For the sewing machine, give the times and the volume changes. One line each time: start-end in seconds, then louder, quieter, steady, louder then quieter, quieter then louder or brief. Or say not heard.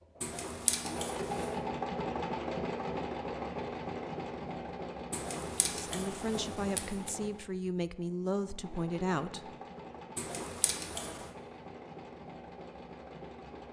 0.0-13.6 quieter.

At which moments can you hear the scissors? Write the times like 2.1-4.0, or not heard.
0.2-1.6, 5.1-7.1, 10.2-11.2.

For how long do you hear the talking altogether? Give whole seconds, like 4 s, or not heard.
4 s.